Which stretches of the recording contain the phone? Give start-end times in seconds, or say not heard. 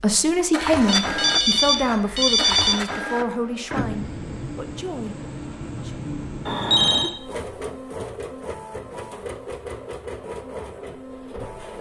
0.8-2.8, 6.5-7.2.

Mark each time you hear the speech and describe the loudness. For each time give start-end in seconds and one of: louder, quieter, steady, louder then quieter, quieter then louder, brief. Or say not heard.
0.0-6.0 quieter.